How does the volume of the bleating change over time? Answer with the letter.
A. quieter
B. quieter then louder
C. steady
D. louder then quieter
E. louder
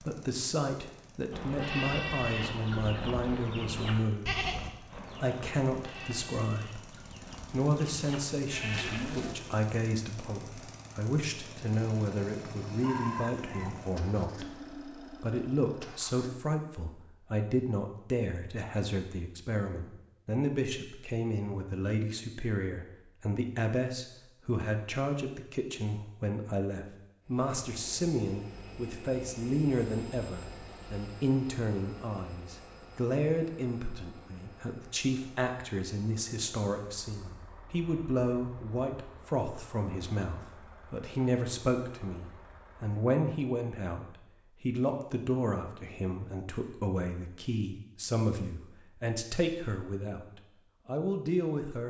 B.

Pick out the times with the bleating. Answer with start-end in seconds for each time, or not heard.
1.3-9.3.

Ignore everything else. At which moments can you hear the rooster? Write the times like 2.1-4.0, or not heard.
12.8-13.8.